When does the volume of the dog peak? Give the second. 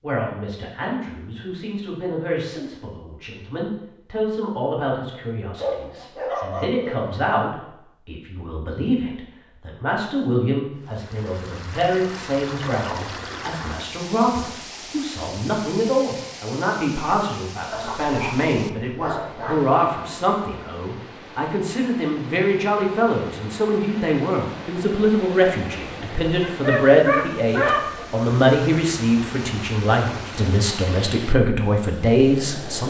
28 s.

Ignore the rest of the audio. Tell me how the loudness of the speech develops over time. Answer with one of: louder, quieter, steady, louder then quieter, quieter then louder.
louder.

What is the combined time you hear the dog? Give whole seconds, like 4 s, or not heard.
5 s.